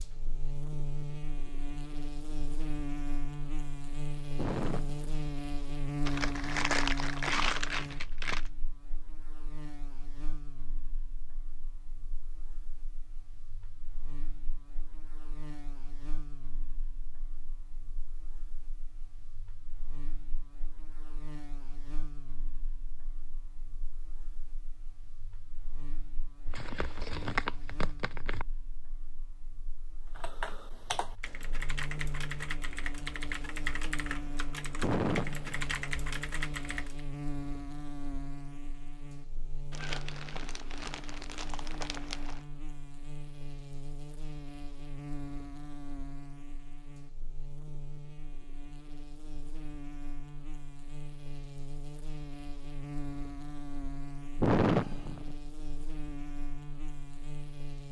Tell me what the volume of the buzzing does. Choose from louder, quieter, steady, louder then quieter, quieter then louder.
quieter then louder.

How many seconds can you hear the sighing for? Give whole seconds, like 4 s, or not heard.
3 s.